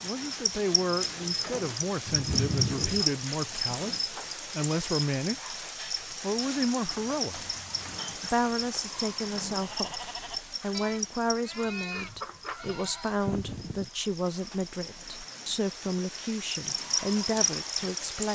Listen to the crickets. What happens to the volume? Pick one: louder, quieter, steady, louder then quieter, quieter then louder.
quieter then louder.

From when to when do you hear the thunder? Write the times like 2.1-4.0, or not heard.
2.0-3.0.